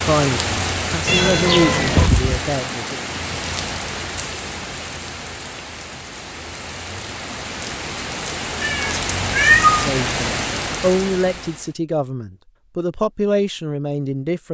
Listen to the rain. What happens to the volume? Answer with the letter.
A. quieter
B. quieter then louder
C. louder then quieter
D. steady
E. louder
B.